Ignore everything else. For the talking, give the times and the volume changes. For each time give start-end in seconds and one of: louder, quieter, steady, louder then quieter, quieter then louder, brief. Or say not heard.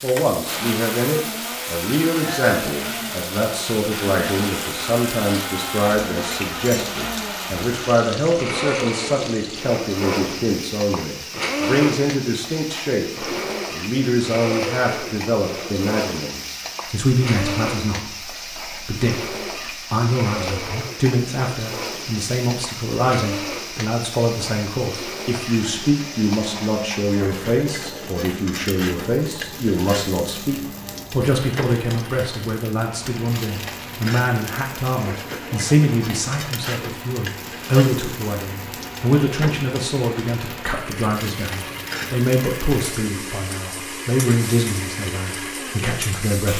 0.0-46.5 steady.